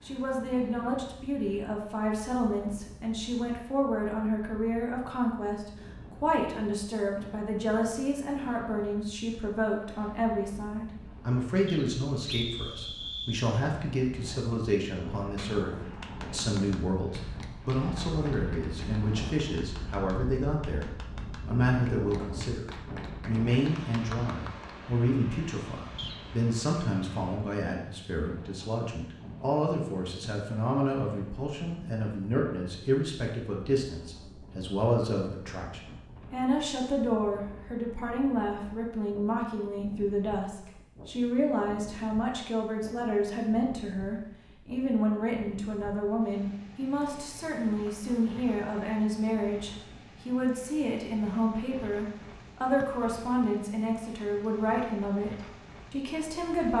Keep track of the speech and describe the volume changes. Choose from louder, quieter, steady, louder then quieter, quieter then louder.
steady.